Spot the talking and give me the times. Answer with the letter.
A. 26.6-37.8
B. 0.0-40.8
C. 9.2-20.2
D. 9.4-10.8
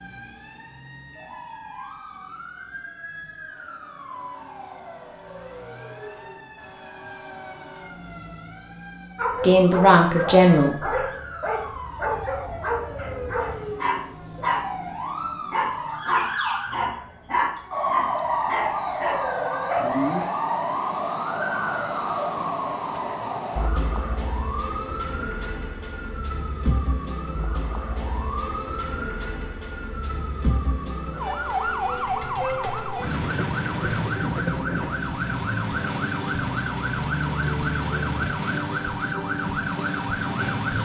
D.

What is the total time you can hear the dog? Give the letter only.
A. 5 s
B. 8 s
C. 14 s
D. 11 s
D.